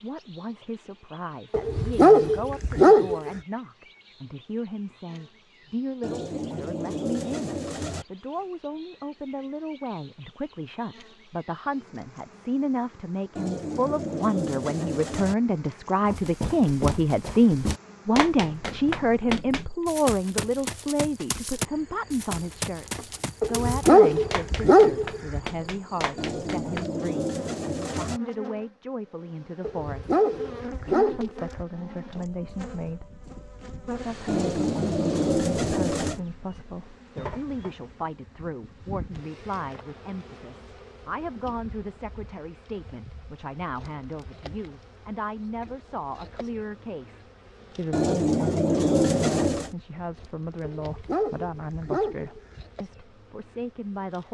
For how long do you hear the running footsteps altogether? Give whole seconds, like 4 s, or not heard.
11 s.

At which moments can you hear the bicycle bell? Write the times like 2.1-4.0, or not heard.
not heard.